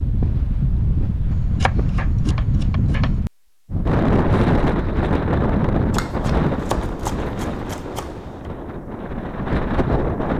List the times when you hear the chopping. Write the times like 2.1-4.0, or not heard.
1.3-3.2, 5.9-8.5.